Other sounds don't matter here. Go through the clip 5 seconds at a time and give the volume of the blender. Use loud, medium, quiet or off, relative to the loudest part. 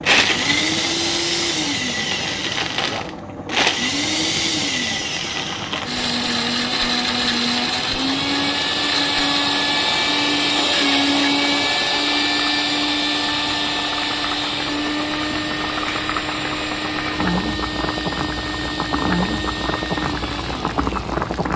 loud, loud, loud, medium, quiet.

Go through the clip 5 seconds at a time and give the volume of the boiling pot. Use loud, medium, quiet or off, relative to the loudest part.
medium, medium, medium, loud, loud.